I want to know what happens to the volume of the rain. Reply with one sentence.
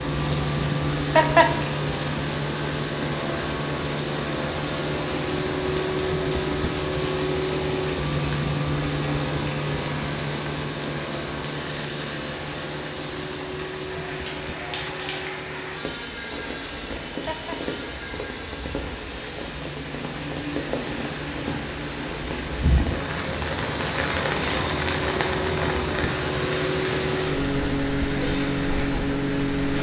The loudness of the rain goes up.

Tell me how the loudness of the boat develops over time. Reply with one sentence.
The loudness of the boat goes down, then up.